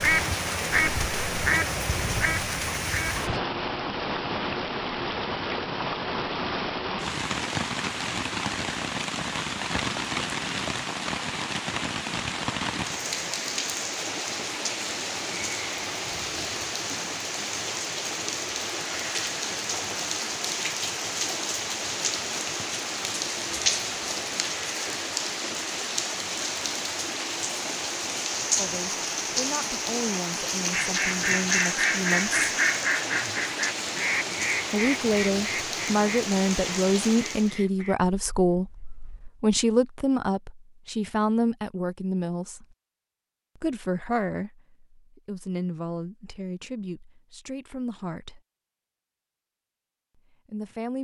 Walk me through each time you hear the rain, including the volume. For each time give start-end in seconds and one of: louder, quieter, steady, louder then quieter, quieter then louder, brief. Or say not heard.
0.0-37.6 steady.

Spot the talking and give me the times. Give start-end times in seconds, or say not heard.
28.6-32.4, 34.7-42.6, 43.5-48.4, 50.3-50.9.